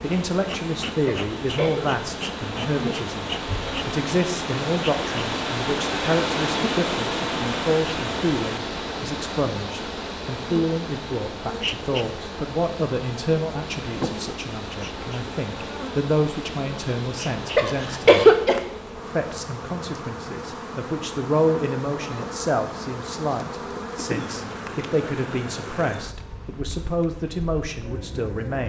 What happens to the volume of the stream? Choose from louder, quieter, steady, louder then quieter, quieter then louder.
louder then quieter.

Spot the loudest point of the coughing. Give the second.
18 s.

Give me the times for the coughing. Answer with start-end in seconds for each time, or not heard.
1.1-1.9, 17.6-18.6.